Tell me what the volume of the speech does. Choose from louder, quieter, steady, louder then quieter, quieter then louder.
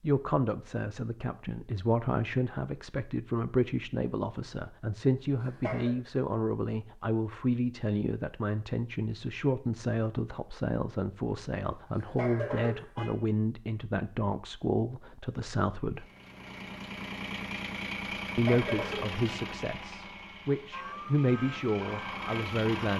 steady.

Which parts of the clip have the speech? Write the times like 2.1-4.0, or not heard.
0.0-16.1, 18.4-22.9.